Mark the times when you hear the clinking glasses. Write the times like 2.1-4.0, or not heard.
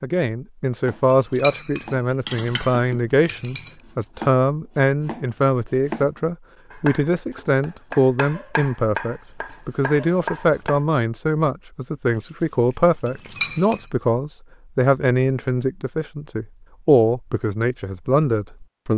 1.1-3.8, 13.1-13.8.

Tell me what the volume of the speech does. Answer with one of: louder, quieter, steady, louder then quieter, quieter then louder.
steady.